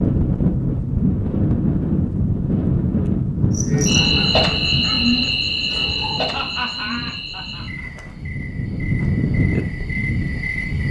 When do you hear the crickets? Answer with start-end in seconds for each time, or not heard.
3.5-10.8.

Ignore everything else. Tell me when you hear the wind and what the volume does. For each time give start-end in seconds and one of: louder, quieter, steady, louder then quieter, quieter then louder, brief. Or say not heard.
0.0-10.8 quieter then louder.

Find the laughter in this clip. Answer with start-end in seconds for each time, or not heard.
6.2-7.8.